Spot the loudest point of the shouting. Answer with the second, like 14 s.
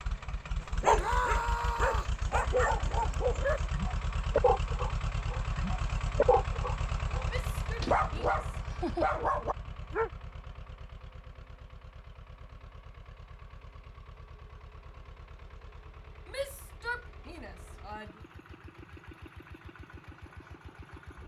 1 s.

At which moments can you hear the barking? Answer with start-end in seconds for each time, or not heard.
0.7-10.1.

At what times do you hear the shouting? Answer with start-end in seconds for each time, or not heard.
0.9-2.1, 7.3-8.4, 16.2-18.2.